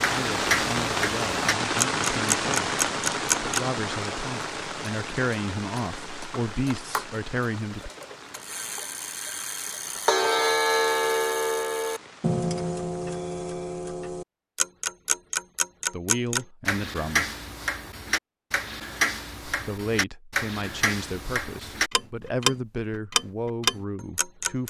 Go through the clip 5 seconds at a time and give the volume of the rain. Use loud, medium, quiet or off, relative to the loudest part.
loud, quiet, quiet, off, off.